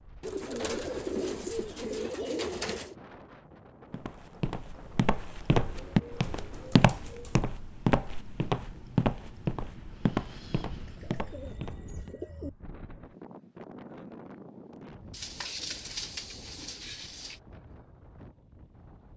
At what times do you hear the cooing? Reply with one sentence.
The cooing can be heard from 0.2 to 3.0 s, from 5.6 to 7.5 s, from 10.8 to 12.5 s and from 15.1 to 17.4 s.